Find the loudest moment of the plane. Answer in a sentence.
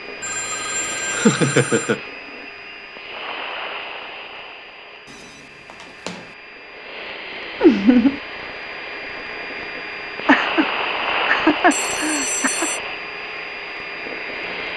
The loudest moment of the plane is at 11 seconds.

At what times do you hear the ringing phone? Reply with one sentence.
The ringing phone can be heard from 0.2 to 1.9 s, from 5.0 to 6.3 s and from 11.7 to 12.8 s.